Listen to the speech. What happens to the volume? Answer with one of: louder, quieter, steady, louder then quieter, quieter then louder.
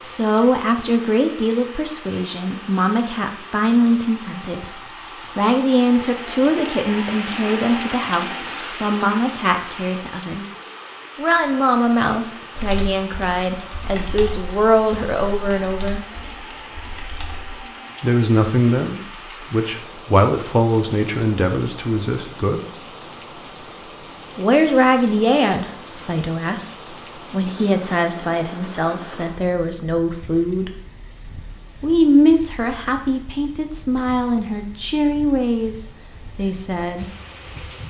steady.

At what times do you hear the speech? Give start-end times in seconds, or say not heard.
0.0-10.4, 11.2-16.1, 18.0-22.6, 24.4-30.8, 31.8-37.0.